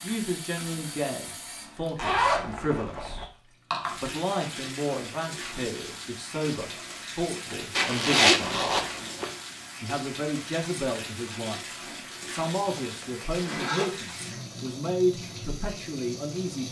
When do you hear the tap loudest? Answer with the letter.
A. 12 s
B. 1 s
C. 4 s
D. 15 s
C.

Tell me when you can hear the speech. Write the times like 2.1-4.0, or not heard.
0.0-3.3, 3.9-8.8, 9.8-16.6.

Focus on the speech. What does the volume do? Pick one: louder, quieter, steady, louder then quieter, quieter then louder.
steady.